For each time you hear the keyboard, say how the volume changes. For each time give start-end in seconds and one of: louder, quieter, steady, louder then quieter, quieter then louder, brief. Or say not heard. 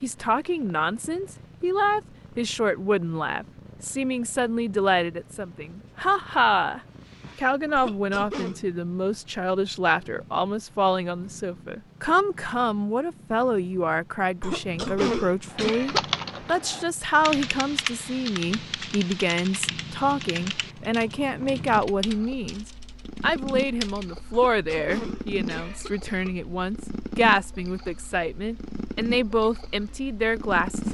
15.5-24.1 quieter.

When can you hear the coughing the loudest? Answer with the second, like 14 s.
15 s.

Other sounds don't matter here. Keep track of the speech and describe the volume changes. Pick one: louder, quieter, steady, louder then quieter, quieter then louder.
steady.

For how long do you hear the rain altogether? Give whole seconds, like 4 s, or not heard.
not heard.